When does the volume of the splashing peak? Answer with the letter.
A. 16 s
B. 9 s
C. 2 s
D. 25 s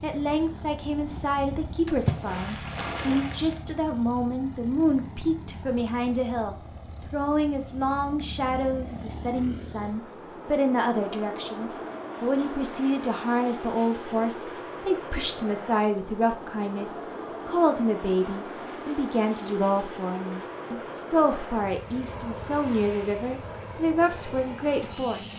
C.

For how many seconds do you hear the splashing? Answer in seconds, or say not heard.
2 s.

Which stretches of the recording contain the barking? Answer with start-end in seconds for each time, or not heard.
not heard.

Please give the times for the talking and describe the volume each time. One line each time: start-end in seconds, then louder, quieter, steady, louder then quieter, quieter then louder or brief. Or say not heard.
0.0-25.3 steady.